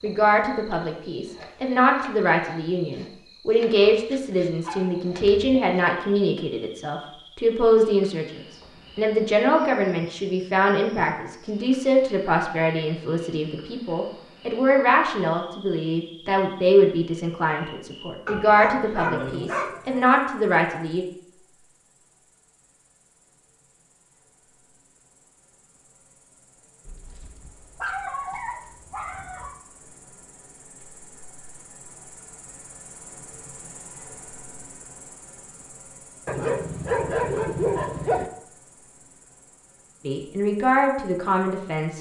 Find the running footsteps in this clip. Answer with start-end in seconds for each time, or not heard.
not heard.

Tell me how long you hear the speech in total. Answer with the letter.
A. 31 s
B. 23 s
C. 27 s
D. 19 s
B.